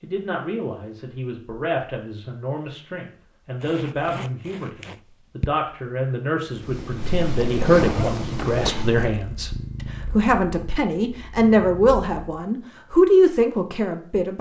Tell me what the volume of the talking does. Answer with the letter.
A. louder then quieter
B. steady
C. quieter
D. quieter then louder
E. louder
E.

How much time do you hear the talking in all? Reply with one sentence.
You can hear the talking for 14 seconds altogether.